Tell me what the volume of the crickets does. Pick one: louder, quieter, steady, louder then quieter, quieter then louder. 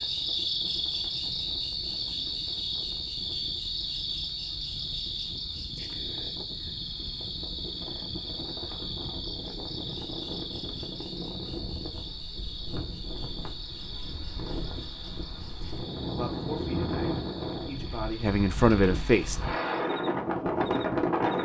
quieter.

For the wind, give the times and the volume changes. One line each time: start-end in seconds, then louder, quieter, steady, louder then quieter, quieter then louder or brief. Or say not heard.
0.0-21.4 louder.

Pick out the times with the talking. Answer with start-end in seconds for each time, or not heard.
16.1-19.4.